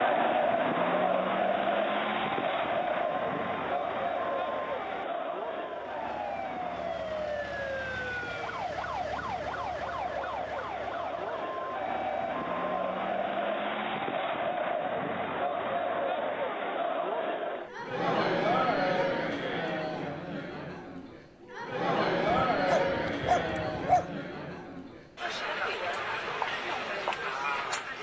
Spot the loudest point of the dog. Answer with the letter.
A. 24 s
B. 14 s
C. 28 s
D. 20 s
A.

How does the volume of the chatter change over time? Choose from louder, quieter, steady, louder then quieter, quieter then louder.
quieter then louder.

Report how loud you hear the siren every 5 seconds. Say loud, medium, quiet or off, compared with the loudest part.
medium, loud, loud, off, off, off.